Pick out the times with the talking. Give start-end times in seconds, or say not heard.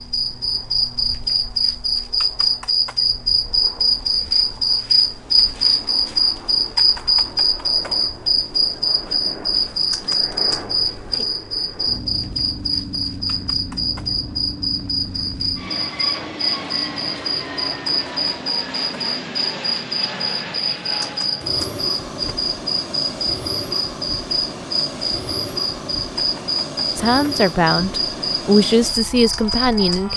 26.9-30.1.